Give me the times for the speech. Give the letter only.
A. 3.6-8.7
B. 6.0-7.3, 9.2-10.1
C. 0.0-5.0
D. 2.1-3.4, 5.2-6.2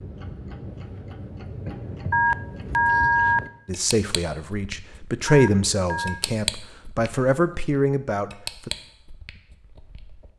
A.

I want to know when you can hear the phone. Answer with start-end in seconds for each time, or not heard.
2.1-3.4, 5.2-6.2.